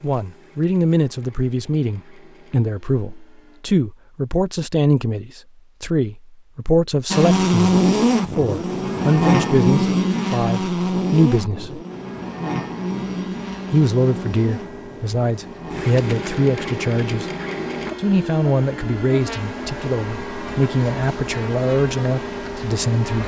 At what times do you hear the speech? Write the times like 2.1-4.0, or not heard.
0.0-11.8, 13.7-17.3, 17.9-23.2.